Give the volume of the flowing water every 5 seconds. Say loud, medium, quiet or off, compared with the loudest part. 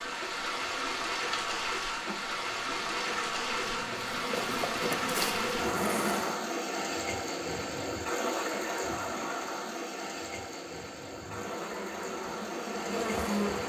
loud, loud, medium.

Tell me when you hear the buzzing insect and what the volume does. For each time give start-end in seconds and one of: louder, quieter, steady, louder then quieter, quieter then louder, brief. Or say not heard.
0.0-6.4 louder
11.1-13.6 brief.